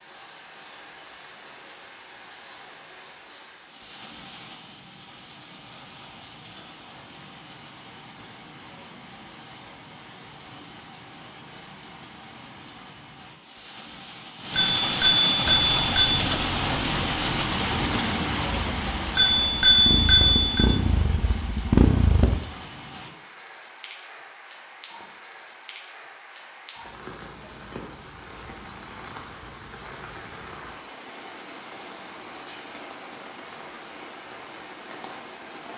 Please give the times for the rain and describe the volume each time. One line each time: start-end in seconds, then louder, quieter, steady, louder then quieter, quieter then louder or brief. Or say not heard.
0.0-35.7 louder then quieter.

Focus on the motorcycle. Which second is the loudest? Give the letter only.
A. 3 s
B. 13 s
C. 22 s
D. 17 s
C.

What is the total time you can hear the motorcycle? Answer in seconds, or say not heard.
7 s.